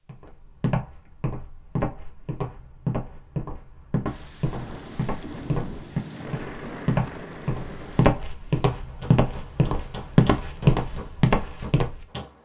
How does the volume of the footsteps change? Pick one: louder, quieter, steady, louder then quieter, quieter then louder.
louder.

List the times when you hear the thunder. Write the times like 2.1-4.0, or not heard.
4.0-8.1.